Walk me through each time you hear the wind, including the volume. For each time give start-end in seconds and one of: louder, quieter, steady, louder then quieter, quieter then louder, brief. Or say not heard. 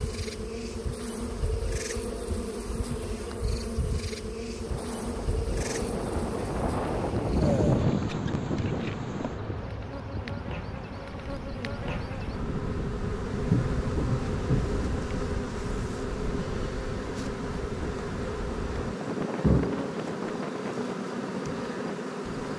4.6-22.5 quieter.